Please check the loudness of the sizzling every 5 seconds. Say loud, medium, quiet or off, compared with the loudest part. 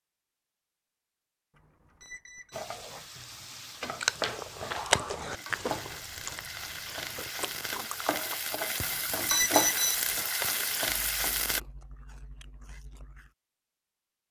medium, loud, loud.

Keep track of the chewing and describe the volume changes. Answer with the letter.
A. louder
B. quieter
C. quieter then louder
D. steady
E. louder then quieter
B.